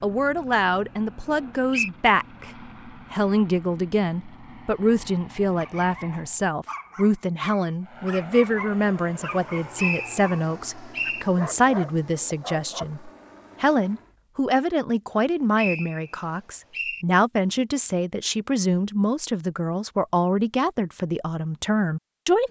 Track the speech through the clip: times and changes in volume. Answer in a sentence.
You can hear the speech from 0.0 to 22.4 s, at a steady volume.